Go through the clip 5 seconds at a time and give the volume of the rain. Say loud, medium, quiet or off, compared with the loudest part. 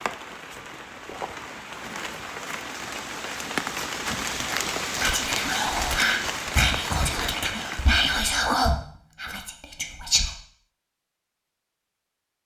loud, loud, off.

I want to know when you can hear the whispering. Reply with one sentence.
The whispering can be heard from 4.4 to 10.3 s.